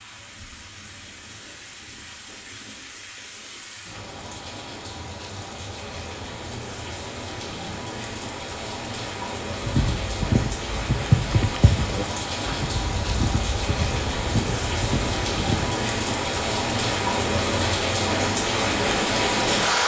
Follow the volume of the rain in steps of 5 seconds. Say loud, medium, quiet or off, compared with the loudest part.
quiet, medium, medium, loud.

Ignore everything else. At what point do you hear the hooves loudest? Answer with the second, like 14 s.
11 s.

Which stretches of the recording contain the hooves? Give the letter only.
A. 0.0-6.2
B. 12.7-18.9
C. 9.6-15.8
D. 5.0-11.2
C.